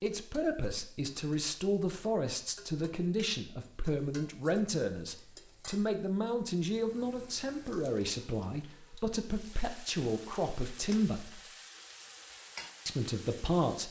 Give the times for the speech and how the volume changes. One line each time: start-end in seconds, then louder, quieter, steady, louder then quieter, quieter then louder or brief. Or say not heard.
0.0-11.4 steady
12.8-13.8 brief.